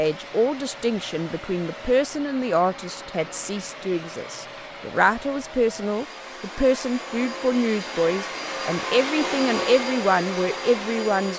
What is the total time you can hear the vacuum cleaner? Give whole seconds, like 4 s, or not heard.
11 s.